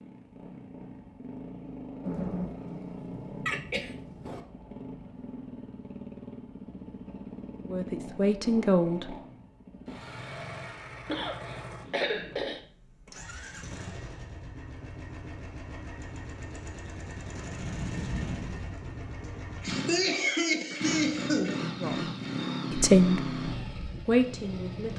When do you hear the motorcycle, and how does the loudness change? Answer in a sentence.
The motorcycle can be heard from 0.0 to 24.9 s, getting louder.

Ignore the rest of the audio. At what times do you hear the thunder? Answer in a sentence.
The thunder can be heard from 2.0 to 4.3 s and from 17.6 to 18.6 s.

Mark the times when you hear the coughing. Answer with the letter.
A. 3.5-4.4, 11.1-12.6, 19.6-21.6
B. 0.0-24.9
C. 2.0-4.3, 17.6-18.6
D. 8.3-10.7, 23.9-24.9
A.